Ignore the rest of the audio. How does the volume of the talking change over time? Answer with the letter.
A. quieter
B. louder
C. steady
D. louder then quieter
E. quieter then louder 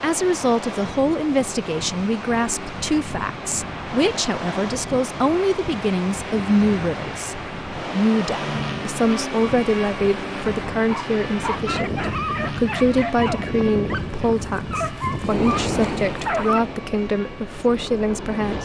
C.